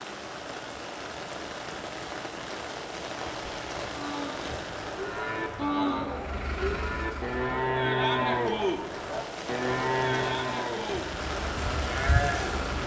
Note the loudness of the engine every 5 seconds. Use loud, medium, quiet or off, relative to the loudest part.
off, loud, loud.